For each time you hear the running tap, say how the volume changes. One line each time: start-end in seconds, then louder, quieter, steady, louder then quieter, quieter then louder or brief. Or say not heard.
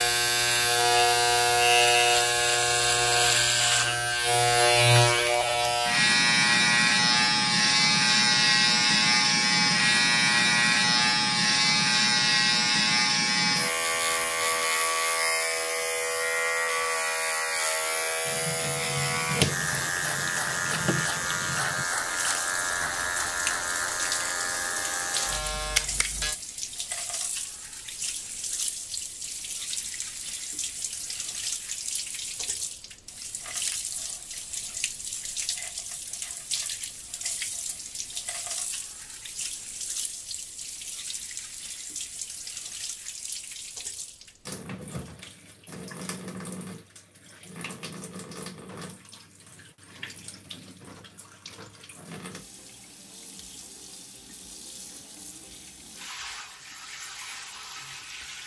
18.2-58.4 quieter.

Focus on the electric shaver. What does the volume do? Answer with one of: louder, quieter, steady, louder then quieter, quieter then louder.
quieter.